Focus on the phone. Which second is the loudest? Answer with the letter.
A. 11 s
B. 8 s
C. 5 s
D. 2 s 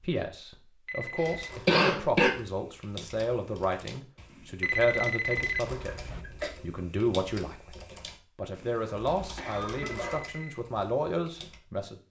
C.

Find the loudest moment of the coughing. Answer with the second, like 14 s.
2 s.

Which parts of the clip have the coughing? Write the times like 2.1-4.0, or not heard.
1.2-2.3, 5.3-6.5, 9.1-10.2.